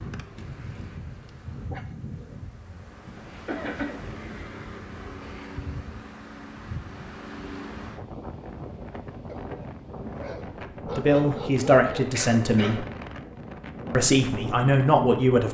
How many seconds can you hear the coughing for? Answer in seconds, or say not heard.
2 s.